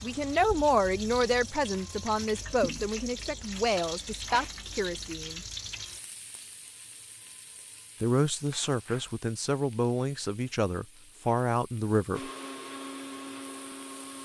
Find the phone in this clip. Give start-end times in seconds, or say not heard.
not heard.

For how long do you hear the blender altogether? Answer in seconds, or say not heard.
2 s.